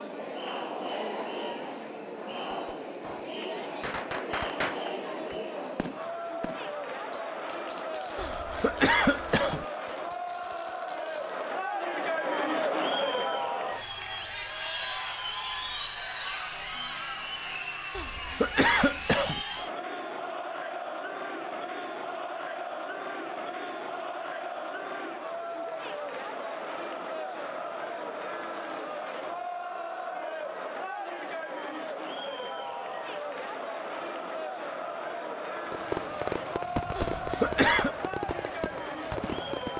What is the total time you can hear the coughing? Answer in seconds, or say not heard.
4 s.